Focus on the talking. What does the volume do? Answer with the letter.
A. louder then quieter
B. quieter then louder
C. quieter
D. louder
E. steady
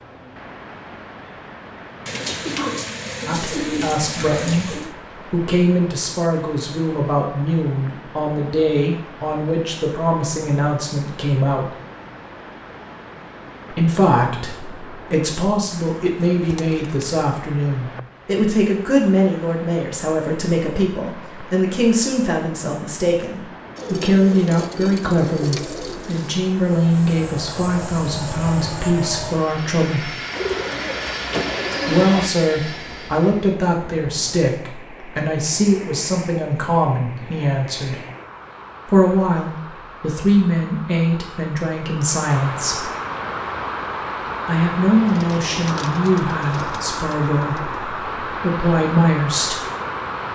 E.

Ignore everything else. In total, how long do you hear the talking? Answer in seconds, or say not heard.
40 s.